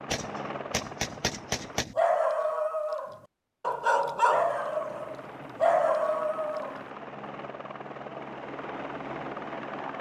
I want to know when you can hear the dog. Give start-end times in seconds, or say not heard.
1.9-6.8.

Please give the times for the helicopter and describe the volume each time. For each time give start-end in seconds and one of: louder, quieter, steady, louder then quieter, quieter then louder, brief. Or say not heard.
0.0-1.9 brief
4.5-9.9 louder.